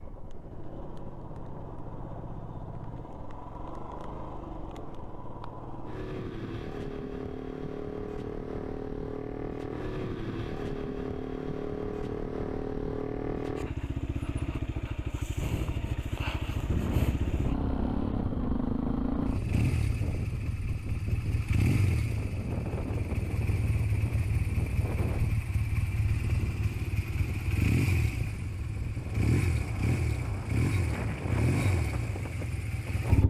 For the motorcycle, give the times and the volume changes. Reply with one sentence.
You can hear the motorcycle from 0.0 to 33.2 s, getting louder.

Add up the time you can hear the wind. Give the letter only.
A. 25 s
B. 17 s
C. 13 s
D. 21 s
B.